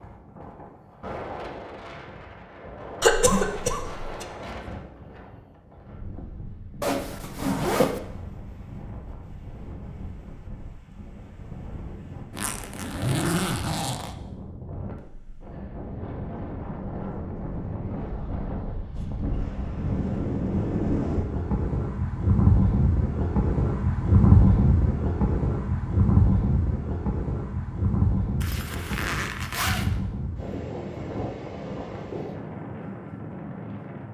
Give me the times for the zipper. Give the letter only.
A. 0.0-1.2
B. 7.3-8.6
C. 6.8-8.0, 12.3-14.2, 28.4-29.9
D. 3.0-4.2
C.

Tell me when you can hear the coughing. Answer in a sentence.
You can hear the coughing from 3.0 to 4.2 s.